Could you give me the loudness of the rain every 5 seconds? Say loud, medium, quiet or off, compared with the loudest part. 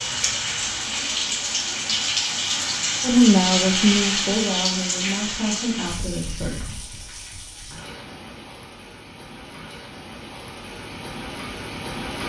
loud, medium, medium.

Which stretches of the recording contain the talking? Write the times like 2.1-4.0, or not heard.
3.0-6.8.